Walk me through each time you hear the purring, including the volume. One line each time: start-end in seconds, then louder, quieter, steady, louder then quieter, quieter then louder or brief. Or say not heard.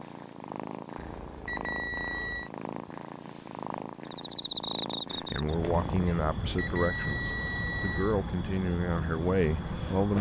0.0-6.1 steady.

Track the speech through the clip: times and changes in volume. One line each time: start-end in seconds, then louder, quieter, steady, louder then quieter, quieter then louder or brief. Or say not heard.
5.3-10.1 steady.